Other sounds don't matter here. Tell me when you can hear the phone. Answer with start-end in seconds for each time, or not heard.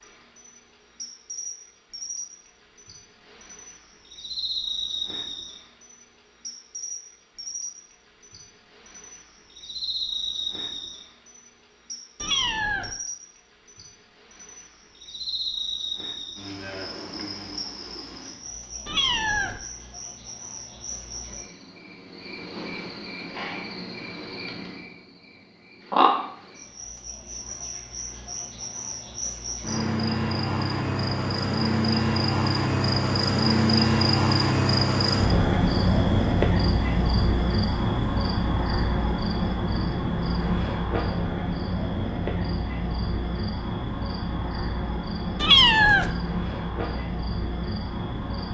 not heard.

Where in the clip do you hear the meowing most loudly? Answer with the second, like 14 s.
46 s.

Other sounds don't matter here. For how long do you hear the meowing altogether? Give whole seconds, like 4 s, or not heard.
2 s.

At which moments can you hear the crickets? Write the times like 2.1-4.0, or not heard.
0.0-48.5.